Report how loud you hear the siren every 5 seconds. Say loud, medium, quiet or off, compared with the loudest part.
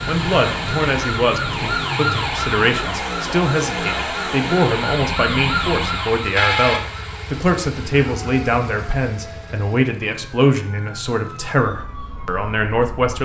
loud, loud, quiet.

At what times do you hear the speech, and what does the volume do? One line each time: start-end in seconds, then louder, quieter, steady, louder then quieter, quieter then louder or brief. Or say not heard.
0.1-13.2 steady.